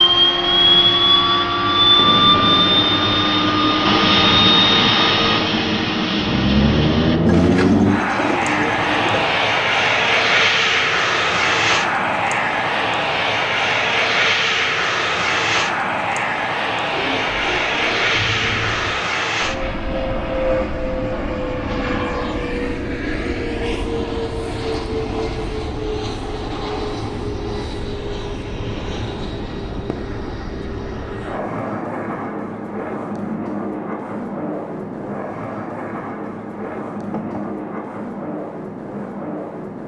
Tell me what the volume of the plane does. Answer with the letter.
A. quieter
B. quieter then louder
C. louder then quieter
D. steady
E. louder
A.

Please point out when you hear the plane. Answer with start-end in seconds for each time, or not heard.
0.0-39.8.